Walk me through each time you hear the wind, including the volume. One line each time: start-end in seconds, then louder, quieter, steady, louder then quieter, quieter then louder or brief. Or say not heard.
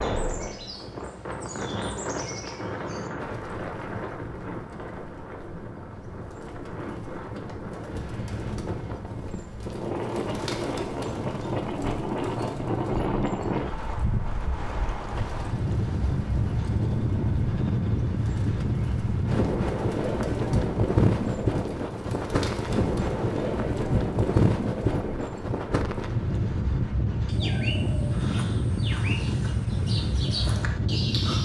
0.0-31.3 louder.